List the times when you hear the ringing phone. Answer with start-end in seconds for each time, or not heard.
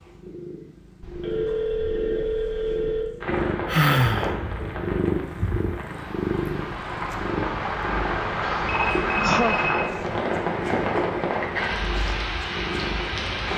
1.0-3.0, 8.7-10.2.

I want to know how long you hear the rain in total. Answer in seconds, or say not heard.
10 s.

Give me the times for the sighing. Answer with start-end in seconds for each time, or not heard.
3.6-4.3, 8.4-9.9.